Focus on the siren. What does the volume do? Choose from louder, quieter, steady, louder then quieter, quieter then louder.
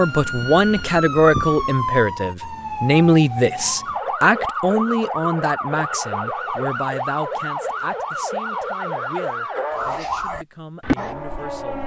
steady.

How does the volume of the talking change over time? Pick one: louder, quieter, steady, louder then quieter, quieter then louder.
quieter.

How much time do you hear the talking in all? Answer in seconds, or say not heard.
12 s.